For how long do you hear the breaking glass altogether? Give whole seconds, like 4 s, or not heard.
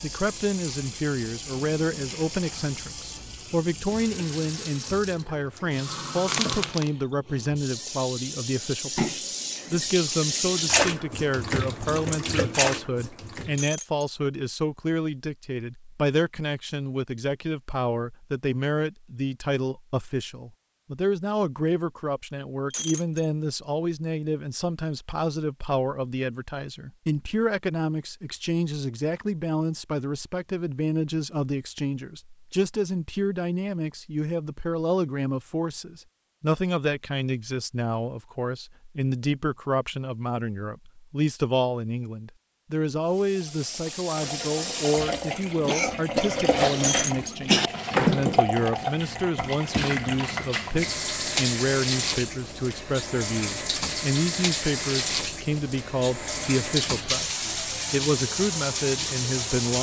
2 s.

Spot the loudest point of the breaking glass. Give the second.
47 s.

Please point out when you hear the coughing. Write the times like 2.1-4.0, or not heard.
6.2-6.9, 45.6-47.7.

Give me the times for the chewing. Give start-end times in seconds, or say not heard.
not heard.